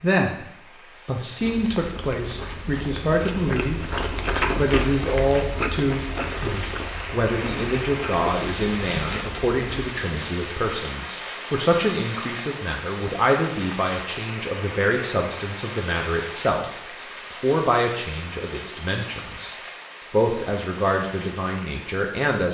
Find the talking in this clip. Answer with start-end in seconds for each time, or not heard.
0.0-4.0, 4.5-19.5, 20.1-22.4.